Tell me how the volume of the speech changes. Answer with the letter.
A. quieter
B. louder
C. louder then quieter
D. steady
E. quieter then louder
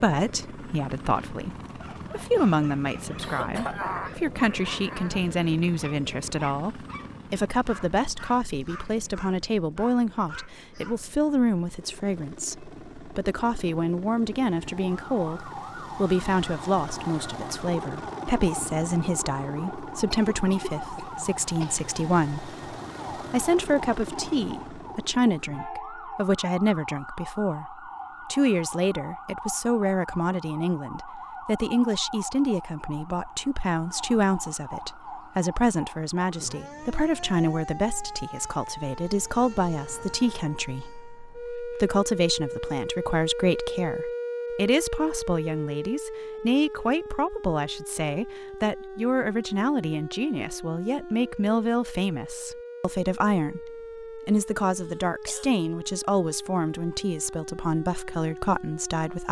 D.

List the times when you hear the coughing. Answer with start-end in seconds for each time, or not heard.
3.2-5.2, 20.1-21.9, 54.8-55.5.